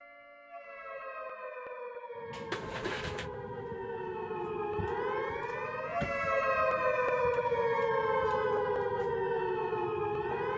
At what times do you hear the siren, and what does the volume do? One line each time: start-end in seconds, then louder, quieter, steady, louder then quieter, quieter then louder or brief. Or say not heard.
0.0-10.5 louder.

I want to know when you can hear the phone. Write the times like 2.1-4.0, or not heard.
2.5-3.3.